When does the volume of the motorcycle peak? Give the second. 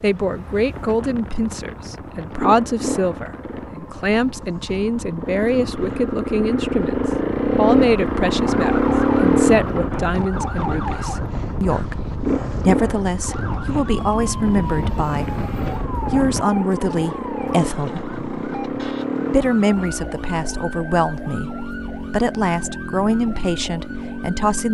9 s.